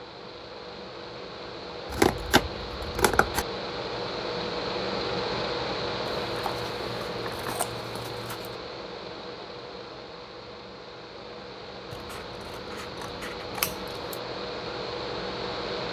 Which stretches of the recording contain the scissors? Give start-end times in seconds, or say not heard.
1.9-3.5, 6.1-8.6, 11.9-14.2.